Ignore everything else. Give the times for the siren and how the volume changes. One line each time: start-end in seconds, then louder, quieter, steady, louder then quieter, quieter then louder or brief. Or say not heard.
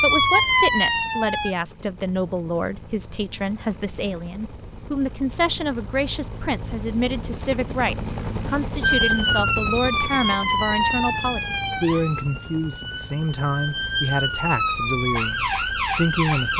0.0-1.6 brief
8.8-16.5 quieter then louder.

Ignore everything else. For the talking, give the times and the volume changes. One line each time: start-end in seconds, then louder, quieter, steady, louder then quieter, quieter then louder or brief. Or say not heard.
0.0-16.5 steady.